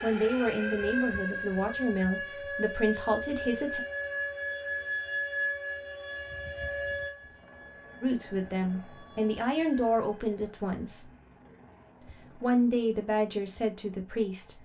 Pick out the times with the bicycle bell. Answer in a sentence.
The bicycle bell can't be heard in this clip.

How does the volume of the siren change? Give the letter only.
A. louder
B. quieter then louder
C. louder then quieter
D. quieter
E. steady
D.